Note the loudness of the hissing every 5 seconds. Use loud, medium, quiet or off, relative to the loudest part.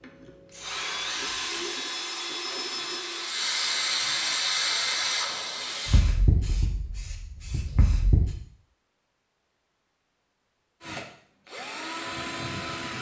loud, loud, off.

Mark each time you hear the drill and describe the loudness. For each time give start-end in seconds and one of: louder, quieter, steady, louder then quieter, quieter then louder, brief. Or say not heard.
0.0-6.9 quieter
10.8-12.9 brief.